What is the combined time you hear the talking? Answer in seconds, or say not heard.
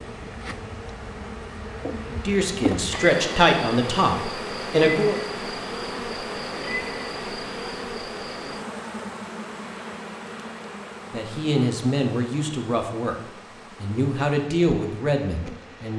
8 s.